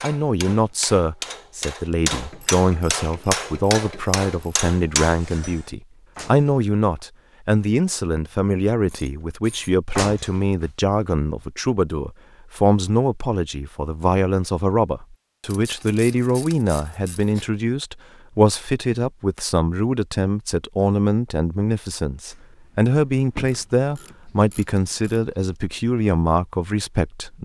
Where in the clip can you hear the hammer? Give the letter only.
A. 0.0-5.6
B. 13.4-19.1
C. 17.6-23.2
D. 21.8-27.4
A.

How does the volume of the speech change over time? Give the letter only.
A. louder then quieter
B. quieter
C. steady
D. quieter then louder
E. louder
C.